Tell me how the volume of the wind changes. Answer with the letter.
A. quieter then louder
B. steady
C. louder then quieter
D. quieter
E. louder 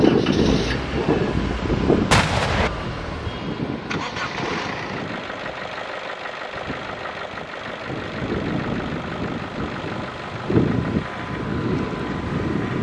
A.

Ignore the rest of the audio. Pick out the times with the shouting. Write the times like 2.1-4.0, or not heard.
not heard.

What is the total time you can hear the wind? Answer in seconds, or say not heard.
13 s.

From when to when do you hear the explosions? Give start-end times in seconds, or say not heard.
2.1-2.7.